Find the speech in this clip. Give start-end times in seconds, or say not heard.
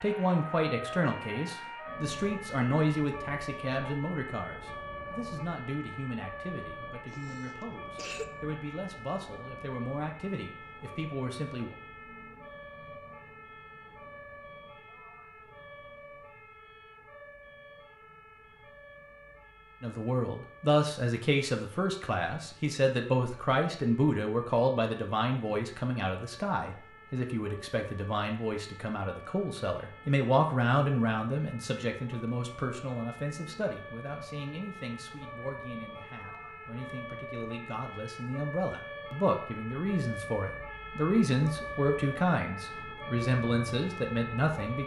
0.0-11.8, 19.8-44.8.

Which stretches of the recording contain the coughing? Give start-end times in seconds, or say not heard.
7.1-8.3.